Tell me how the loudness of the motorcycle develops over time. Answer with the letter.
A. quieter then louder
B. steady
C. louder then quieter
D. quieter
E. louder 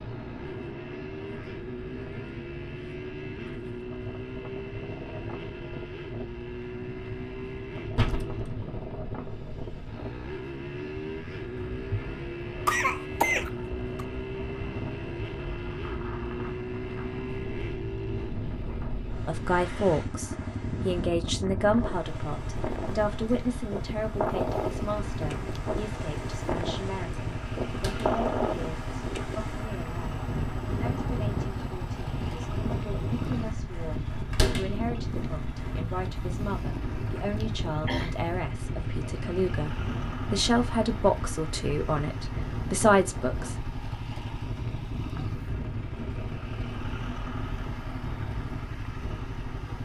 B.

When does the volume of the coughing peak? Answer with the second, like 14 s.
13 s.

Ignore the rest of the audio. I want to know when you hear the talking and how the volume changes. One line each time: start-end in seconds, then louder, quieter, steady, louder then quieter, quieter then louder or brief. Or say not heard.
19.2-43.8 quieter then louder.